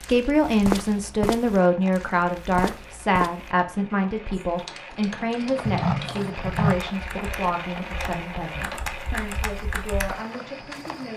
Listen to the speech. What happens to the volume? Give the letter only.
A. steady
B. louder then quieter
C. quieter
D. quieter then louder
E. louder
C.